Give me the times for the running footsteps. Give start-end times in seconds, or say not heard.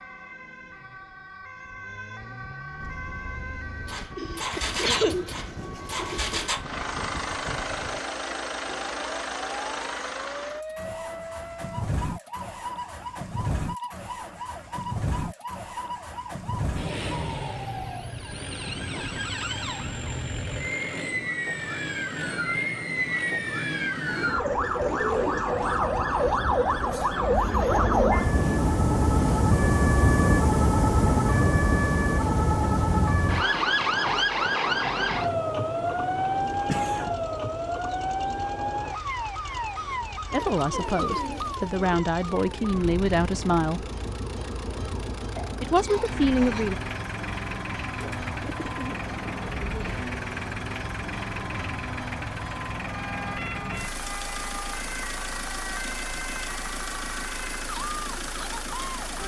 not heard.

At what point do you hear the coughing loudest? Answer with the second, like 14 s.
5 s.